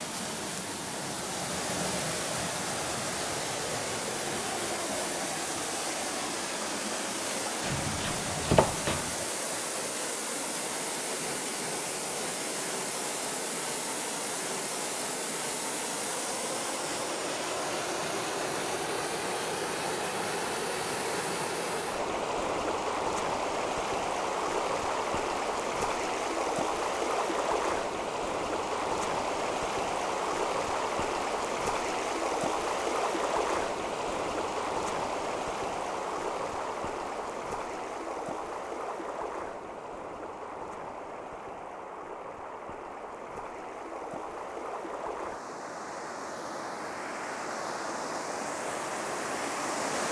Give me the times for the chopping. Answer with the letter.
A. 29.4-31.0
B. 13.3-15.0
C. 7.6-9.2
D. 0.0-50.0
C.